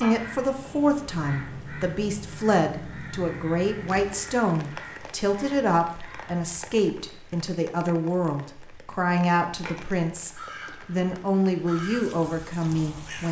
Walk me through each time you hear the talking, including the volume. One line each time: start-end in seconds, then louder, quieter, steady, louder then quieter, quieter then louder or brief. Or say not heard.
0.0-13.2 steady.